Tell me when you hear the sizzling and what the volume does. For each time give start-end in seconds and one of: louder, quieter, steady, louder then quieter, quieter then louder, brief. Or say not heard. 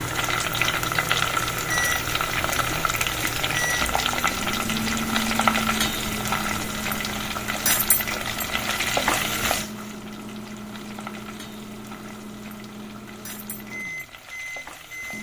0.0-15.1 quieter.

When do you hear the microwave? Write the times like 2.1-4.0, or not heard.
0.0-15.1.